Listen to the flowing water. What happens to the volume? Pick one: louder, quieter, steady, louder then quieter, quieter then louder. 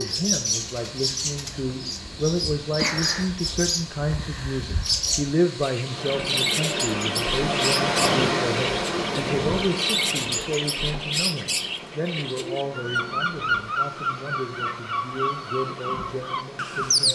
louder then quieter.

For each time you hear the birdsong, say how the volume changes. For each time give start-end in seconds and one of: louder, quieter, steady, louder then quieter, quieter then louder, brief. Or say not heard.
0.0-17.1 steady.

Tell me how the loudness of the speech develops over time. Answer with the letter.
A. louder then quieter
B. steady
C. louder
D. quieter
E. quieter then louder
D.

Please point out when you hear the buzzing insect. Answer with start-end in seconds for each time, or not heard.
not heard.